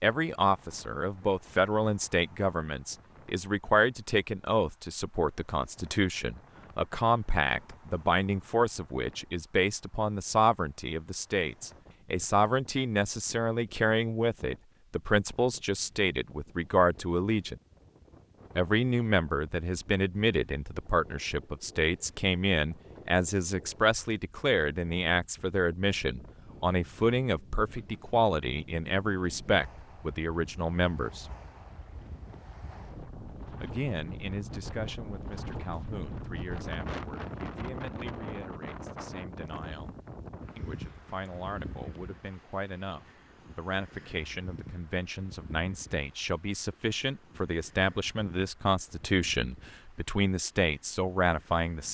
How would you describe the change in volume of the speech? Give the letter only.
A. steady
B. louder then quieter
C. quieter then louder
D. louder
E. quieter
C.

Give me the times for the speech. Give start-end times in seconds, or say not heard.
0.0-17.6, 18.6-31.3, 33.6-40.0, 40.5-51.8.